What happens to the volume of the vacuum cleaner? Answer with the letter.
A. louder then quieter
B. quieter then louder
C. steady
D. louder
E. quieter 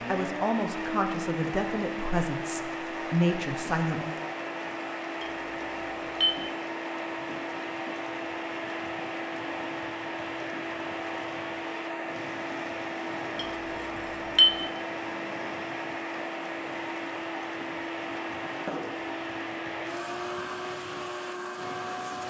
C.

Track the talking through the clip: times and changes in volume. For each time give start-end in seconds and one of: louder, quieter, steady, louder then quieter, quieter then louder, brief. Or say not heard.
0.1-4.2 quieter then louder.